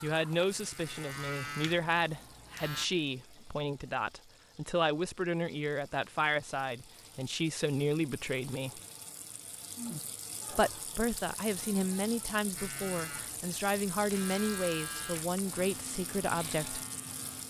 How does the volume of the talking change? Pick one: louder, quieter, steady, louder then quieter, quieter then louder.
steady.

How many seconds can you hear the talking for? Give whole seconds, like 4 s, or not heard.
15 s.